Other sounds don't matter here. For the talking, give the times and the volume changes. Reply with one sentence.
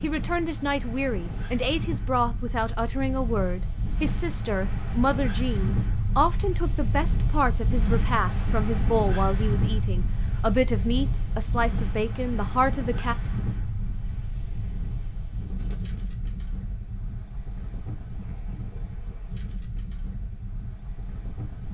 You can hear the talking from 0.0 to 13.2 s, at a steady volume.